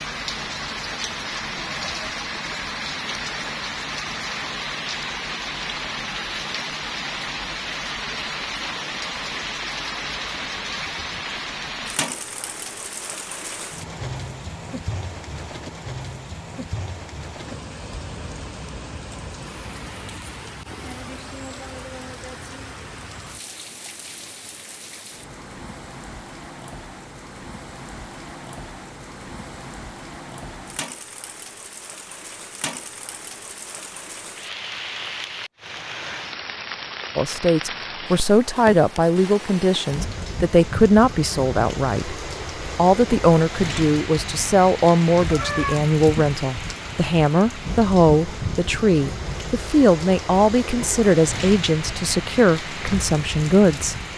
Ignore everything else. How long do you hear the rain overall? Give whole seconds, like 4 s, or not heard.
54 s.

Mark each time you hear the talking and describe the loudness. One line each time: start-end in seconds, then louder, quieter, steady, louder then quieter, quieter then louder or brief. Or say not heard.
37.1-54.0 steady.